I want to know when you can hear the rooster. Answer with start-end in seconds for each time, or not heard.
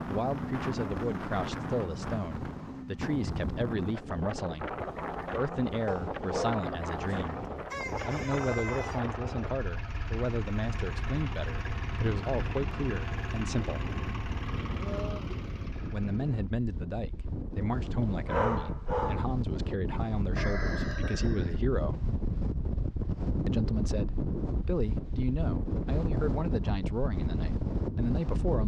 7.7-9.1, 20.4-21.6.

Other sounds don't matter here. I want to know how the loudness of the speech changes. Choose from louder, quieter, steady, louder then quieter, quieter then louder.
steady.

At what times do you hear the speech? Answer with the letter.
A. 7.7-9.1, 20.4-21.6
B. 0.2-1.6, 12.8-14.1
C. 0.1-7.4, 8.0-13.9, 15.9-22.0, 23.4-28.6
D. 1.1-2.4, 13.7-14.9
C.